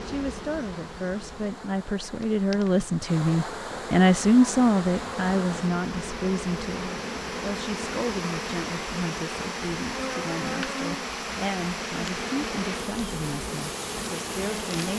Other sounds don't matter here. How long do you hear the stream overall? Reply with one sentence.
You can hear the stream for 15 seconds altogether.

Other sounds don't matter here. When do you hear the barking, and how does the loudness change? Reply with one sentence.
The barking can't be heard in this clip.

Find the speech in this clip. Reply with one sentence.
The speech can be heard from 0.1 to 14.9 s.